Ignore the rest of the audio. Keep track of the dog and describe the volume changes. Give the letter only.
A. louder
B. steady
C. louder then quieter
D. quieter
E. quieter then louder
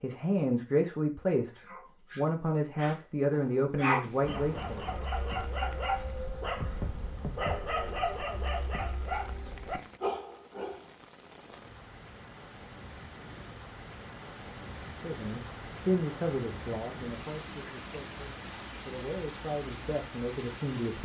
A.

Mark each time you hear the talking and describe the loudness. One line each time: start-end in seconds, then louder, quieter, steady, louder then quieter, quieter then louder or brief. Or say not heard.
0.0-4.8 steady
15.0-20.9 quieter then louder.